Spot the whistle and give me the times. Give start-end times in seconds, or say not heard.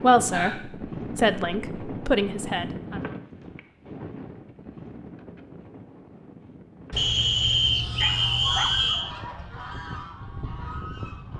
7.0-9.2.